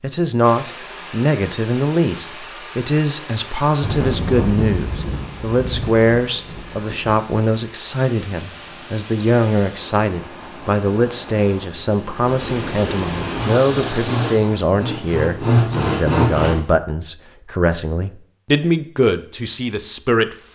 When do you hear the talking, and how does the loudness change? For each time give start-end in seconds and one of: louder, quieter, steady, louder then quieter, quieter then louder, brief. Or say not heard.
0.0-20.4 steady.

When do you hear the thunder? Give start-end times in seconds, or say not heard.
3.4-7.2.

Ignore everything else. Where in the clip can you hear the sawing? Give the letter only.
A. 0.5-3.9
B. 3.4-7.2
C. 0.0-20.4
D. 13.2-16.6
D.